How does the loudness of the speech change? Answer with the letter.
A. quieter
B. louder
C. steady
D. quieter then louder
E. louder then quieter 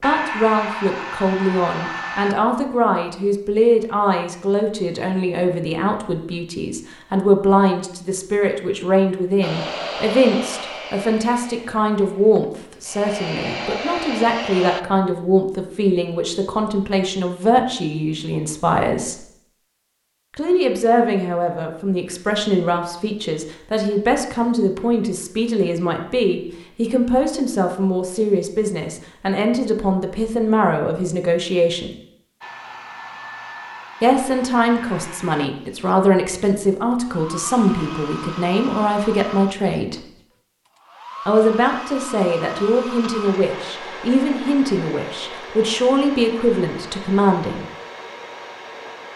C.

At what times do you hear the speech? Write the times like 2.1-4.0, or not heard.
0.0-19.2, 20.4-31.9, 34.0-40.0, 41.2-47.6.